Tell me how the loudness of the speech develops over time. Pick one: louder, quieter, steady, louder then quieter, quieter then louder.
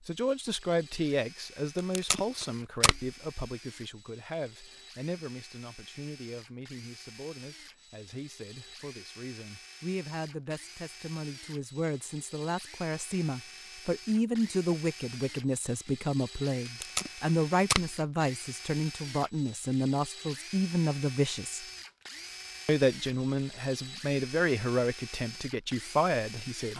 quieter then louder.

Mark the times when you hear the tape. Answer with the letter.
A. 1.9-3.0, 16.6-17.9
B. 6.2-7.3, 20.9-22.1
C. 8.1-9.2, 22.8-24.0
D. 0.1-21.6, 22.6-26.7
A.